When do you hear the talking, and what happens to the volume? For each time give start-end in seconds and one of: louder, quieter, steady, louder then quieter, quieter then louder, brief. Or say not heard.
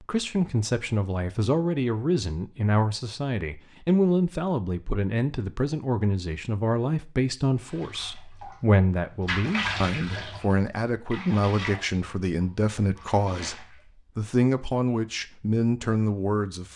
0.0-16.7 steady.